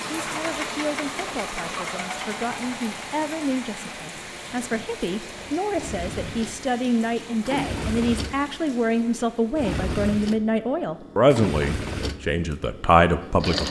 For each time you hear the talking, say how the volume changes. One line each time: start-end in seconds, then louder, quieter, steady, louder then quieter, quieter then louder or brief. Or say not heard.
0.2-13.6 louder.